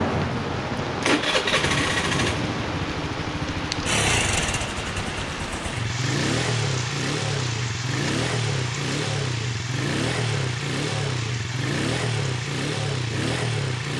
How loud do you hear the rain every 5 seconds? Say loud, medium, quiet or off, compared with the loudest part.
loud, medium, medium.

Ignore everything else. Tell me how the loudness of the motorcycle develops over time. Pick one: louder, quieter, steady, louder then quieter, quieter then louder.
steady.